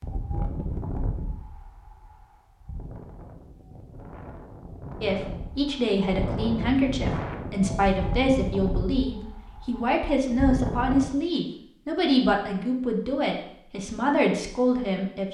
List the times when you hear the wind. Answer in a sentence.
The wind can be heard from 0.0 to 11.2 s.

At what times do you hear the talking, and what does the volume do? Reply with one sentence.
The talking can be heard from 5.0 to 15.2 s, at a steady volume.